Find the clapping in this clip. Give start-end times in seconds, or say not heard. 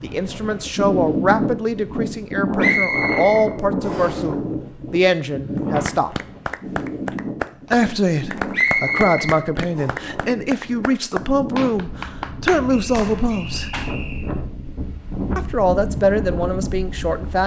5.5-13.9.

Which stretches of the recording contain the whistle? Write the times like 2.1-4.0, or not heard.
2.5-4.2, 8.5-9.8, 12.7-14.3.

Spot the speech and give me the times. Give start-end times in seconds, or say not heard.
0.0-6.2, 7.7-13.7, 15.3-17.4.